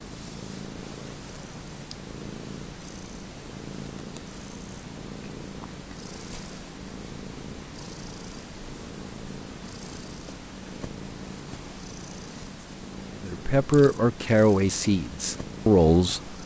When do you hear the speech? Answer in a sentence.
The speech can be heard from 13.2 to 16.4 s.